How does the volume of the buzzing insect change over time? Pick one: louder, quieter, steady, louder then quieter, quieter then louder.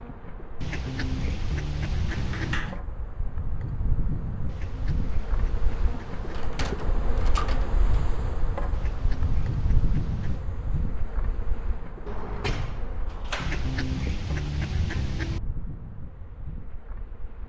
louder then quieter.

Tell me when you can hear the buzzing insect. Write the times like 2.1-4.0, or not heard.
0.0-17.4.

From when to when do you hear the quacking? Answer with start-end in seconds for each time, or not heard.
0.6-2.6, 4.5-6.5, 8.7-10.4, 13.3-15.4.